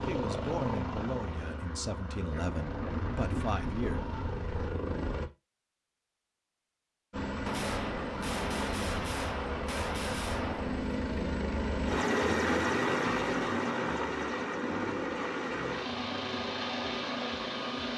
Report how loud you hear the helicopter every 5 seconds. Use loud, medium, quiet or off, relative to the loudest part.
medium, medium, loud, loud.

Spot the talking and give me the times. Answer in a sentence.
The talking can be heard from 0.1 to 4.0 s.